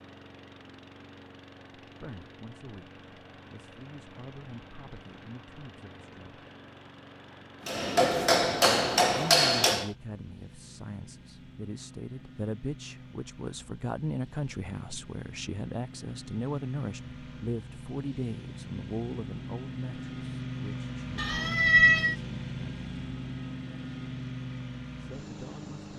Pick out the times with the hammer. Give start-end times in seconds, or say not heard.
7.7-9.9.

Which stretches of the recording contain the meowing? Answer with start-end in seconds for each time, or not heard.
21.1-22.1.